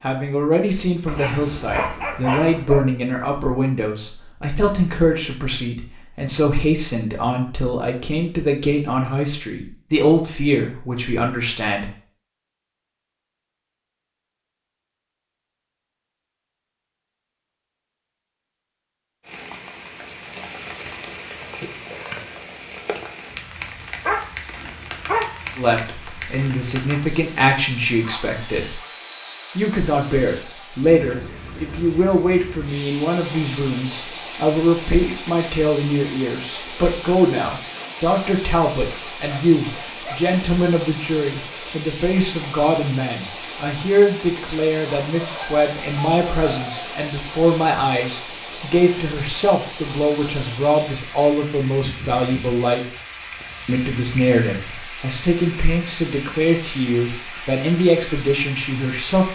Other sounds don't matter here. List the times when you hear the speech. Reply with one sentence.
You can hear the speech from 0.0 to 11.8 s, from 25.6 to 28.8 s, from 29.6 to 52.8 s and from 53.6 to 59.2 s.